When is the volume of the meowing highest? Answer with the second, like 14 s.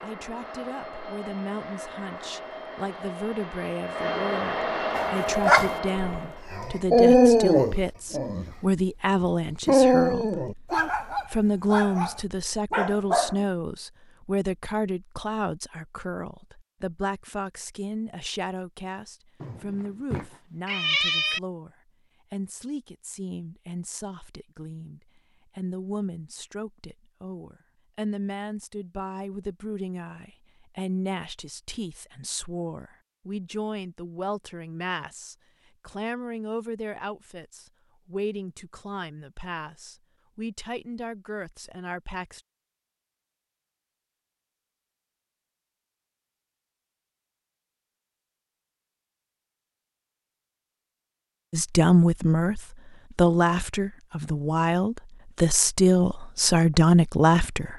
21 s.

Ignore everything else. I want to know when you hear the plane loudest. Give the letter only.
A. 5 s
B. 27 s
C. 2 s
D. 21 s
A.